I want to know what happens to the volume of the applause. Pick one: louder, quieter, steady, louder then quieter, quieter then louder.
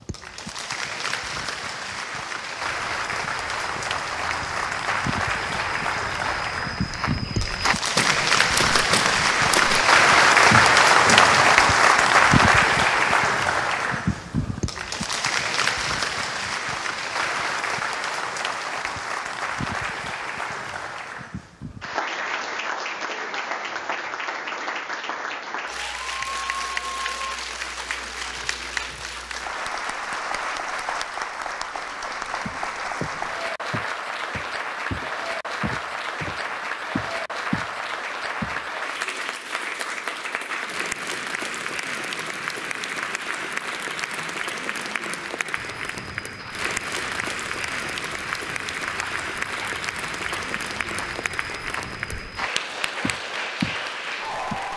quieter.